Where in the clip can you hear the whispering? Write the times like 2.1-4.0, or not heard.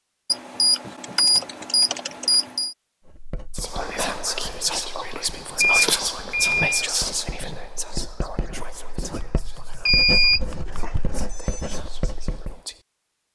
3.5-12.8.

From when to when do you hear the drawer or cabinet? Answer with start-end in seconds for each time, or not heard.
not heard.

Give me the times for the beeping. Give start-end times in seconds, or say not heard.
0.3-2.8, 5.6-6.6, 9.8-11.8.